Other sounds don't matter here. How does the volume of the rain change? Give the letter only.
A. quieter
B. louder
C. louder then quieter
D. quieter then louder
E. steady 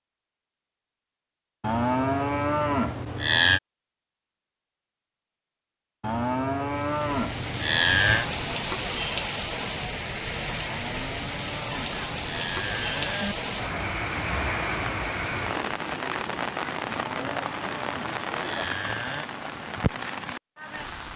E.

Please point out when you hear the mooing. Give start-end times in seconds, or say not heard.
1.6-3.6, 6.0-8.2, 10.7-13.3, 16.8-19.2.